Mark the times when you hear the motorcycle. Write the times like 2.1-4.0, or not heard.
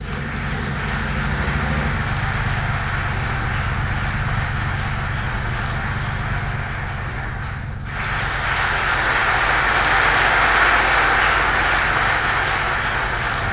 0.0-13.4.